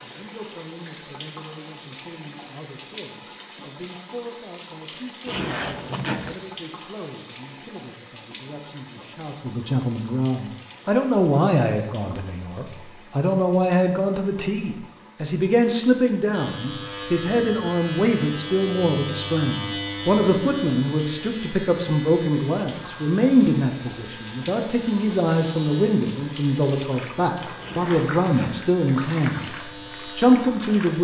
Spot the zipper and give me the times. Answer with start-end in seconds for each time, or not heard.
5.2-6.3, 27.6-28.6.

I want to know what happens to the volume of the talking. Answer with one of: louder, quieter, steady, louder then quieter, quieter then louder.
louder.